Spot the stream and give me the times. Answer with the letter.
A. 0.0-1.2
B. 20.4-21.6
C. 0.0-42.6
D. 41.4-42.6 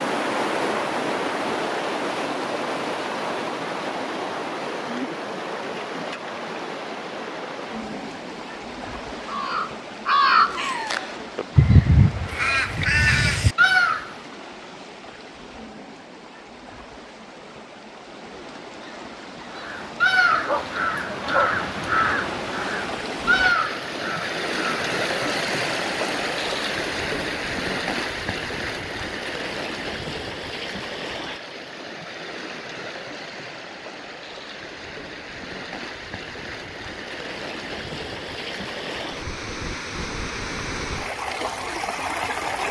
C.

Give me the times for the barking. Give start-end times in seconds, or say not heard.
20.4-21.6.